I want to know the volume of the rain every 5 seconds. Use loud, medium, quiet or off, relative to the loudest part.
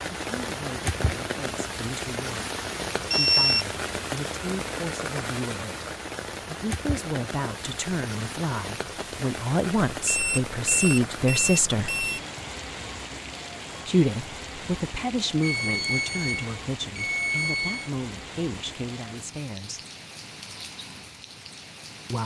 loud, loud, medium, medium, medium.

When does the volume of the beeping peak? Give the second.
3 s.